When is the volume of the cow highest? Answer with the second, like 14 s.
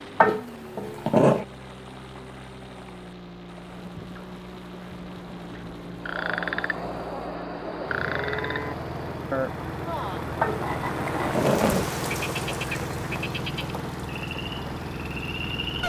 8 s.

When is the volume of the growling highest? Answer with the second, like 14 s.
1 s.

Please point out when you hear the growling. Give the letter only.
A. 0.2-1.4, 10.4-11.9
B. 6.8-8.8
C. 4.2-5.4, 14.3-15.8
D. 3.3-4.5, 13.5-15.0
A.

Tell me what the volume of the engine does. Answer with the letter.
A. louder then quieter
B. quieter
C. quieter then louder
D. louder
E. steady
D.